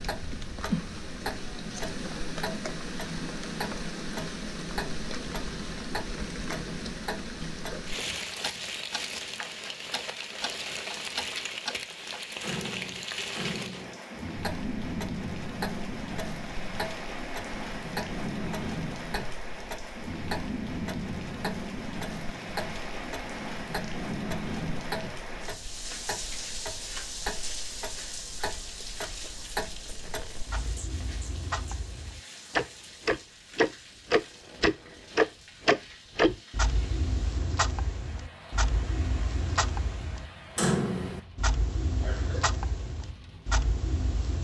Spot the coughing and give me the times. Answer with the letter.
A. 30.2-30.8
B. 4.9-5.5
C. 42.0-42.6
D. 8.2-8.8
C.